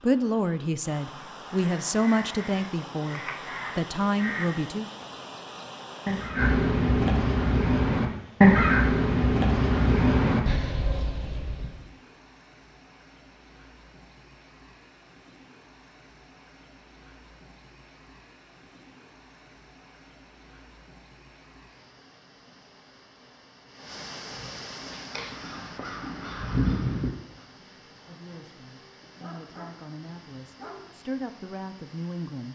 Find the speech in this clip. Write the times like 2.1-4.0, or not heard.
0.0-4.9, 27.4-32.5.